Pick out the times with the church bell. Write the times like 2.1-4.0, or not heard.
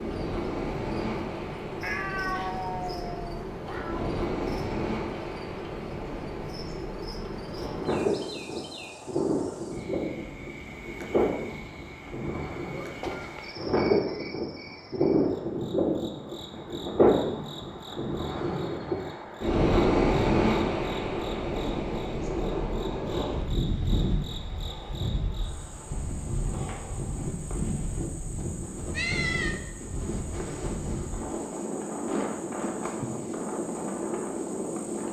not heard.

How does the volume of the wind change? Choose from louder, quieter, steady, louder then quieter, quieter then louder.
louder then quieter.